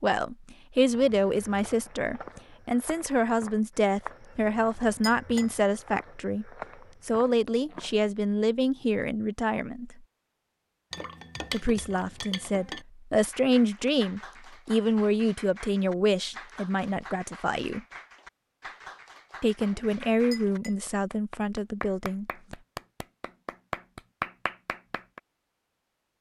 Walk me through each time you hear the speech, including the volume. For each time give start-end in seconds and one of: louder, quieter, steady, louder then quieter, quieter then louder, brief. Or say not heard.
0.0-10.0 steady
11.5-17.8 louder then quieter
19.4-22.2 brief.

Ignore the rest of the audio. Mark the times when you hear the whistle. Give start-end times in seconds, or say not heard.
not heard.